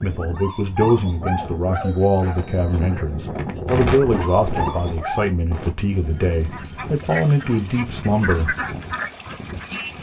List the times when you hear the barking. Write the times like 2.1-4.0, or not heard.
0.0-5.2.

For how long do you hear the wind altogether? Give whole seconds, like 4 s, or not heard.
10 s.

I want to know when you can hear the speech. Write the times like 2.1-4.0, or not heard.
0.0-8.6.